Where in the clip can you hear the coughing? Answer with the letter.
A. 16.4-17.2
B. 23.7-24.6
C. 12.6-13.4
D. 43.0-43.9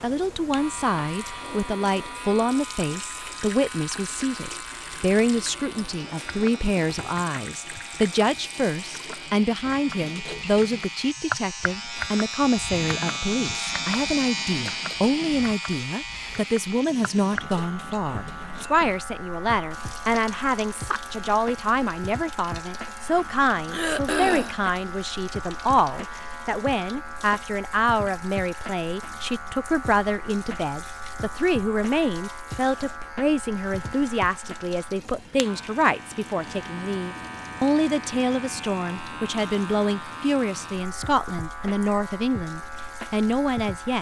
B.